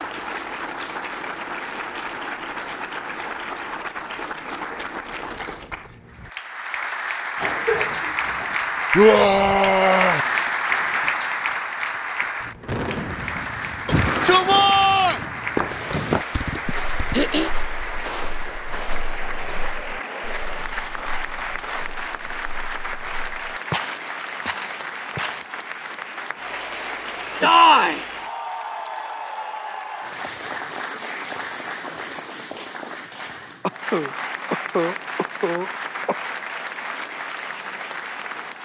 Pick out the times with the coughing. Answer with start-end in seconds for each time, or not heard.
7.3-8.6, 16.6-17.5, 33.6-36.1.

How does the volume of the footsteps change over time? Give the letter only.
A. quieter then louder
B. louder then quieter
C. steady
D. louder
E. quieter
A.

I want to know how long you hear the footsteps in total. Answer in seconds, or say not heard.
10 s.